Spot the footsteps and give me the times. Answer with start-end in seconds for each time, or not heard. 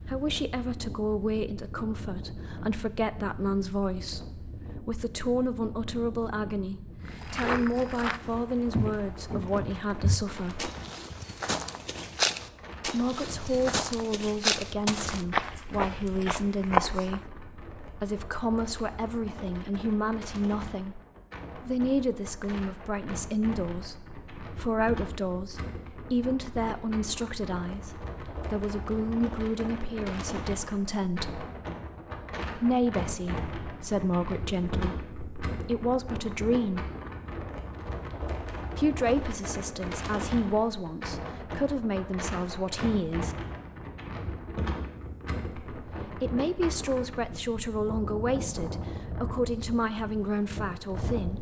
7.0-17.2.